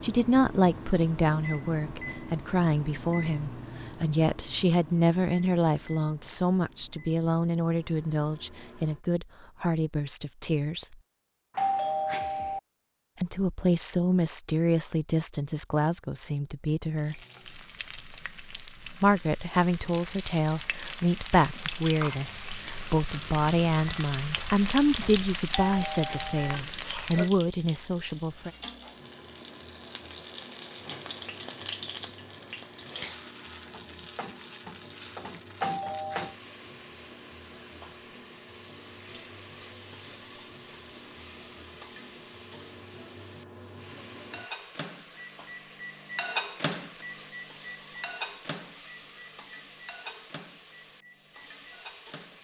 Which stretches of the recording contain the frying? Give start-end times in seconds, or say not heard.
16.9-52.3.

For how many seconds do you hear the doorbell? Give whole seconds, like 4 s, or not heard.
3 s.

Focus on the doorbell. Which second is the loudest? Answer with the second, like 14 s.
12 s.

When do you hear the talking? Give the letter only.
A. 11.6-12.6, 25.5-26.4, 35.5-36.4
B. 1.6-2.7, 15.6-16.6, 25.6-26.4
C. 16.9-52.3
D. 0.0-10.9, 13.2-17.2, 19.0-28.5
D.